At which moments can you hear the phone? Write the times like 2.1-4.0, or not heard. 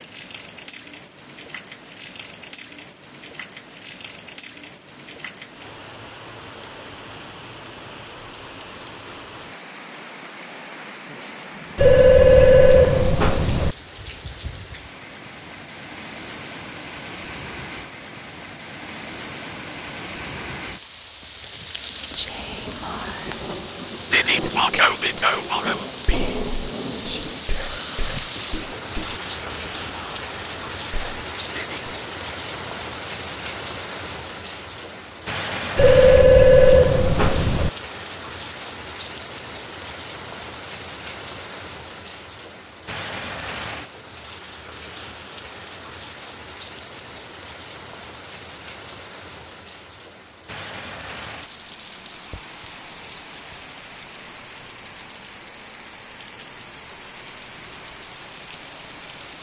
11.8-13.8, 35.8-37.7.